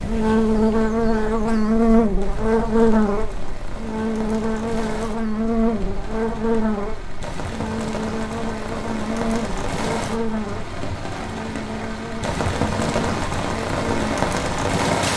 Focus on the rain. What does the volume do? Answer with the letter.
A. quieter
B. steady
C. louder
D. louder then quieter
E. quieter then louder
C.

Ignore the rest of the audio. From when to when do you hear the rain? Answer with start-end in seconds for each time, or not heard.
0.0-15.1.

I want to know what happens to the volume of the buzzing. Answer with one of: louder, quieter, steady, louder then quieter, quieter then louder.
quieter.